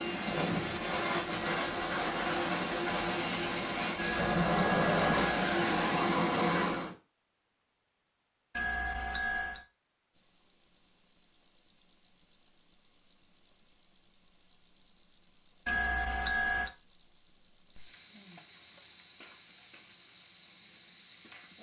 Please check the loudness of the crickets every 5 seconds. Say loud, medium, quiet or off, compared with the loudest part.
off, off, loud, loud, loud.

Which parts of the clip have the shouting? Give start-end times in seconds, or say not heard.
not heard.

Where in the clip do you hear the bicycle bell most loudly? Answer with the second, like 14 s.
16 s.